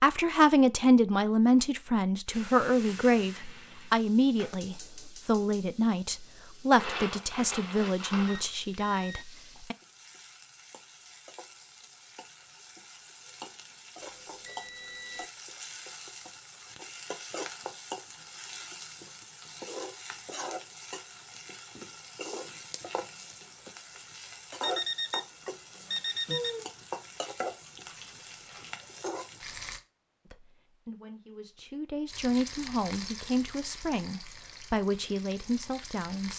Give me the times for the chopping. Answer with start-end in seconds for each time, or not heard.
not heard.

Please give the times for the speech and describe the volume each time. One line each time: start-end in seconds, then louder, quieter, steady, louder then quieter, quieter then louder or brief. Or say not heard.
0.0-9.8 quieter
30.3-36.3 louder.